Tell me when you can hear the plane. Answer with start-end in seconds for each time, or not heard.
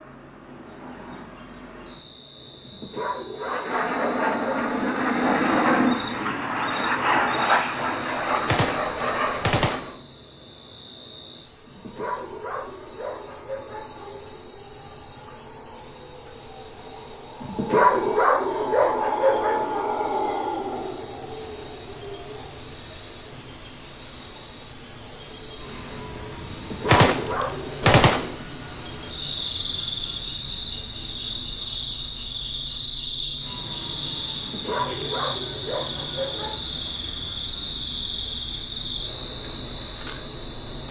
3.4-9.9, 25.4-40.8.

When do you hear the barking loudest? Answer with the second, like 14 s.
18 s.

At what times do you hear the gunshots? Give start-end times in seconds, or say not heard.
8.4-9.9, 26.9-28.4.